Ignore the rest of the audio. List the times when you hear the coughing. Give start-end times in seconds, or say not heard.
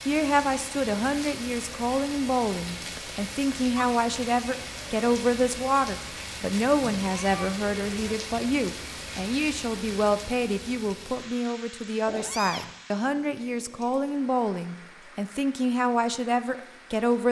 not heard.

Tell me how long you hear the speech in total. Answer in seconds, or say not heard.
17 s.